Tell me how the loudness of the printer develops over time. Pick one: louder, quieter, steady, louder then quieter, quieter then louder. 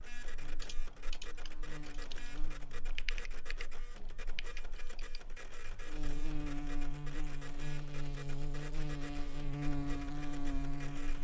steady.